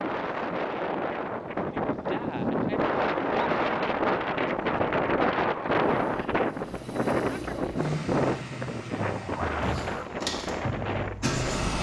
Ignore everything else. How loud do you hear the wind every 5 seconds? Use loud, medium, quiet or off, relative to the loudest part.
loud, loud, medium.